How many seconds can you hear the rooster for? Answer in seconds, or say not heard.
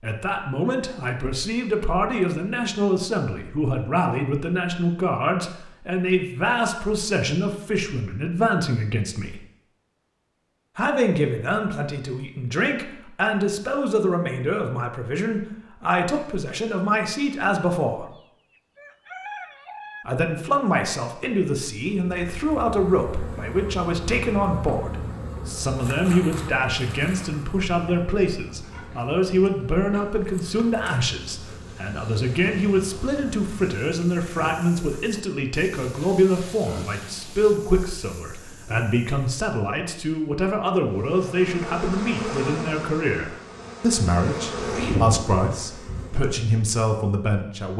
2 s.